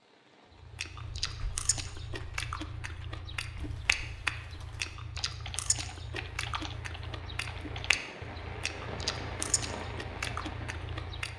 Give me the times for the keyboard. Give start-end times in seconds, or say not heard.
1.0-8.1.